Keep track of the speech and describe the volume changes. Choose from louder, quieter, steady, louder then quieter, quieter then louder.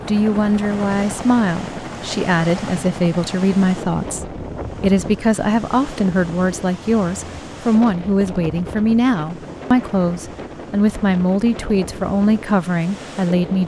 steady.